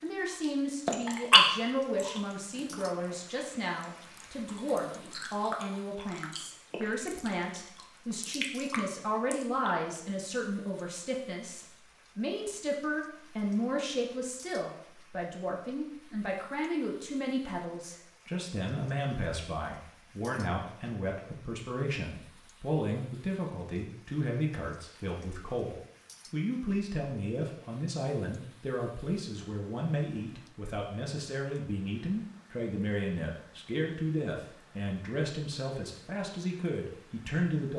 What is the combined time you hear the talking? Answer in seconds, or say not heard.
38 s.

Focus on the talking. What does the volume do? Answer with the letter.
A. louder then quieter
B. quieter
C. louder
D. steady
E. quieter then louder
D.